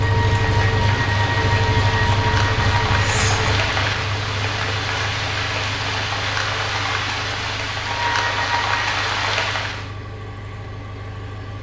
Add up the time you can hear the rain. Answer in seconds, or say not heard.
10 s.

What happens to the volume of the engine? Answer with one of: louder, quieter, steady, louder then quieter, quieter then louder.
quieter.